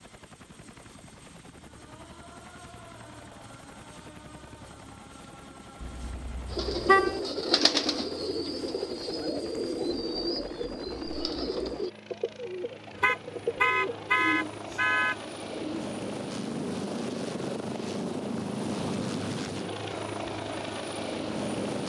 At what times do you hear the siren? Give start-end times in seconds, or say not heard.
not heard.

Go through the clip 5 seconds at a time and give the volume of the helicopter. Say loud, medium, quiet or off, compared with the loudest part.
quiet, quiet, medium, loud, loud.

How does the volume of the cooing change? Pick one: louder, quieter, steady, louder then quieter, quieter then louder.
quieter.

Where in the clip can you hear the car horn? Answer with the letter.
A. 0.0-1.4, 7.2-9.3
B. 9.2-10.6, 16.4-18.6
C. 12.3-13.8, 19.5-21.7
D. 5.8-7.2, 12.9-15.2
D.